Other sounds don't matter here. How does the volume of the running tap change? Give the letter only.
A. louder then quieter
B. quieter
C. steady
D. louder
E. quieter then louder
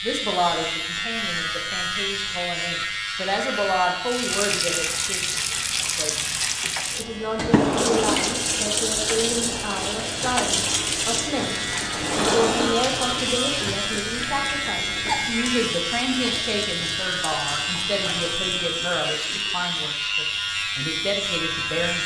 B.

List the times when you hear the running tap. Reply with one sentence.
The running tap can be heard from 4.0 to 19.7 s.